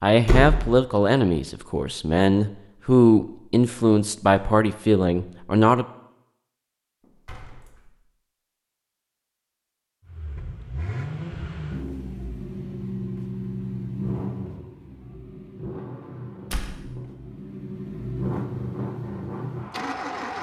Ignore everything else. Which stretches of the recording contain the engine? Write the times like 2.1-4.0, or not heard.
10.1-20.3.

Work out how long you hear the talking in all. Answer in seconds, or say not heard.
6 s.